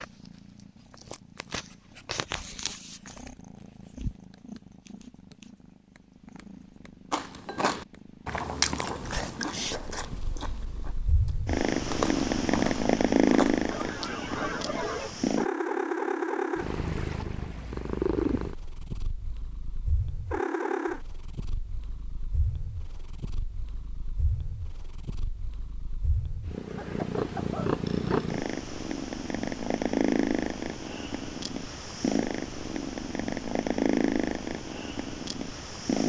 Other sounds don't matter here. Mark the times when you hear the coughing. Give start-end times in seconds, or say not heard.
13.7-15.1, 26.7-28.3.